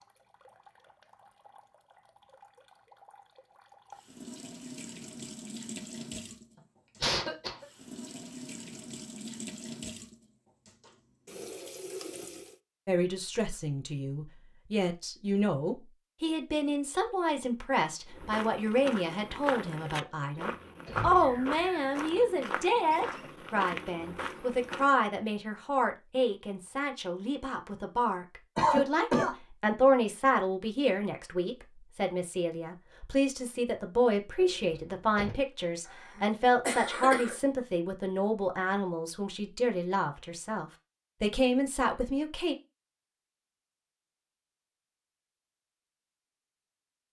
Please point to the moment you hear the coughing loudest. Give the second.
29 s.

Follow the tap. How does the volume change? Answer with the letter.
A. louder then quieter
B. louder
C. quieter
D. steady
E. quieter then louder
B.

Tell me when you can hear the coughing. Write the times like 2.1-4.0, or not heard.
7.0-7.7, 28.6-29.4, 35.9-37.4.